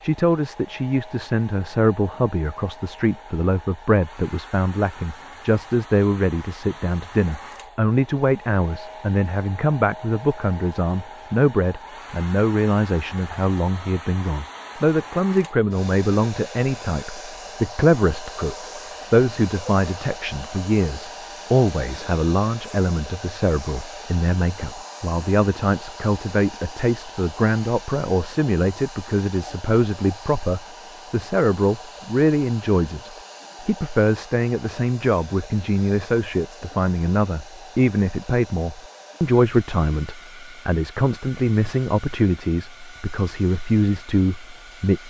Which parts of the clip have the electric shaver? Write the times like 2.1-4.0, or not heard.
not heard.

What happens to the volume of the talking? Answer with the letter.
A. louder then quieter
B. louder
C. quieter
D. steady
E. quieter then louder
D.